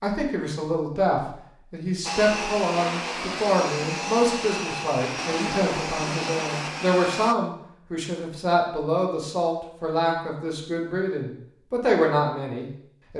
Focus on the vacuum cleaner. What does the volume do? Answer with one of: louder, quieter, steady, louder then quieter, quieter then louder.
steady.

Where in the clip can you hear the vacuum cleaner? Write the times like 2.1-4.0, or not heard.
2.0-7.3.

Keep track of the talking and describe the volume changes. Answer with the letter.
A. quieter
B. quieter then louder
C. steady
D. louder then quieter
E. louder
C.